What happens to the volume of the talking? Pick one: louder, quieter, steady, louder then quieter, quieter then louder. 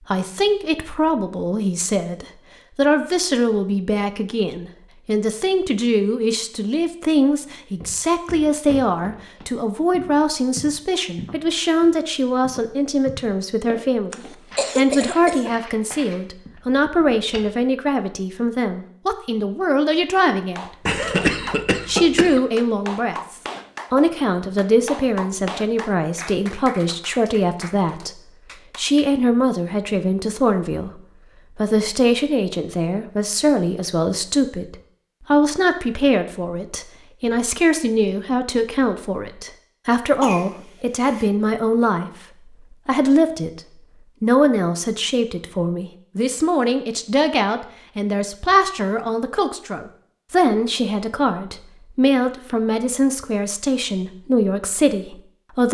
steady.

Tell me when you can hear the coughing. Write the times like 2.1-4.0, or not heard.
14.1-15.5, 20.9-22.4, 40.2-41.2.